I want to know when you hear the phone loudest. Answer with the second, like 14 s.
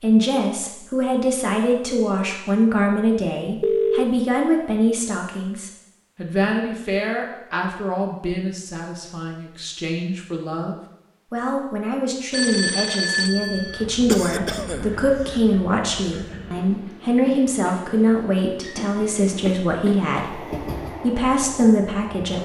4 s.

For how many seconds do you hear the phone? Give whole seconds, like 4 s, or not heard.
2 s.